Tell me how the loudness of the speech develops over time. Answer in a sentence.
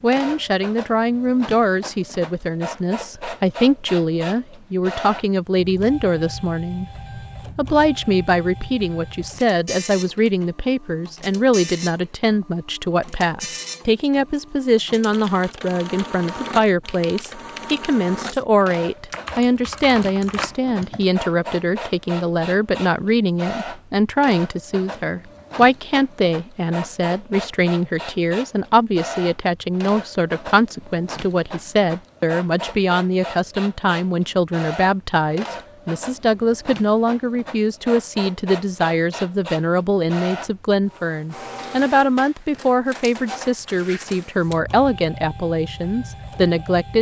The volume of the speech stays about the same.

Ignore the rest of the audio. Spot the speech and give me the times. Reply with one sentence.
The speech can be heard from 0.0 to 6.8 s and from 7.5 to 46.9 s.